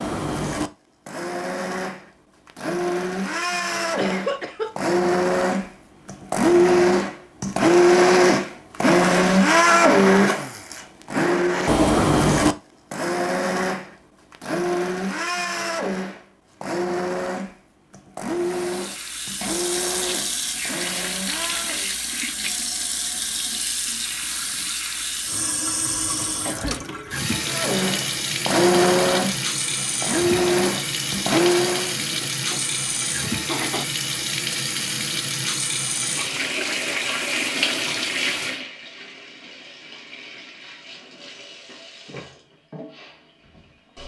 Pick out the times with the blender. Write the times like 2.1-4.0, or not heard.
0.0-21.9, 27.4-31.9.